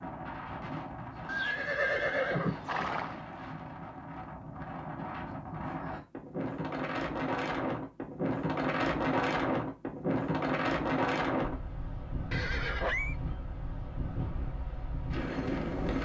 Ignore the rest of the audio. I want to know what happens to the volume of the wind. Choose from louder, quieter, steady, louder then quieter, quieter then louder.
louder then quieter.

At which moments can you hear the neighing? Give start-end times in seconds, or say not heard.
1.2-3.1, 12.3-13.2.